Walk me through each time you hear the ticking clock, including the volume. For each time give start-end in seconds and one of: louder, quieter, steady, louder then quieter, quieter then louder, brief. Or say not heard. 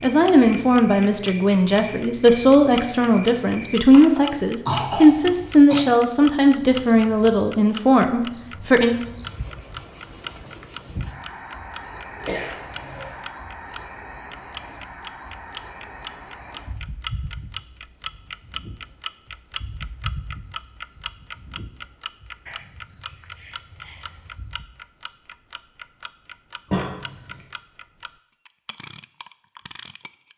0.0-30.3 quieter.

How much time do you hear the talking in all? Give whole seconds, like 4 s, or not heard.
9 s.